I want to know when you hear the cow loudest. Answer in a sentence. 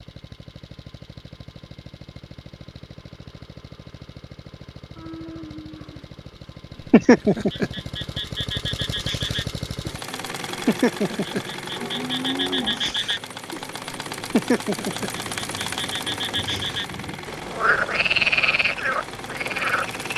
The loudest moment of the cow is at 12 seconds.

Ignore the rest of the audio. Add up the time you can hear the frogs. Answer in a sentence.
The frogs can be heard for 12 seconds in total.